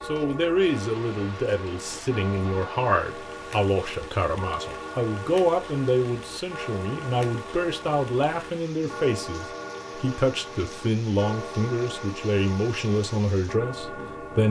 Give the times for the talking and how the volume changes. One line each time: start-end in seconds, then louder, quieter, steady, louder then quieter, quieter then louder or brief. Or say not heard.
0.0-14.4 steady.